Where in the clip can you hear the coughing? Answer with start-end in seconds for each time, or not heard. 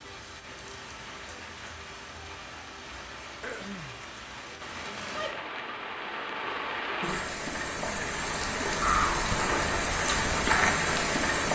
3.4-4.0.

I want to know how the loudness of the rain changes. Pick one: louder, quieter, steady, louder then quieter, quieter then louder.
louder.